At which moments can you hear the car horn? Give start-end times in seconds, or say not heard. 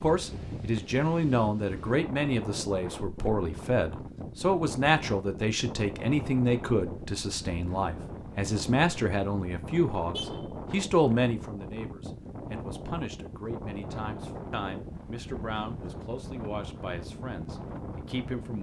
10.1-10.6.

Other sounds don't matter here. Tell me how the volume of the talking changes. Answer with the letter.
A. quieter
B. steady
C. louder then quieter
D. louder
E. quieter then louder
A.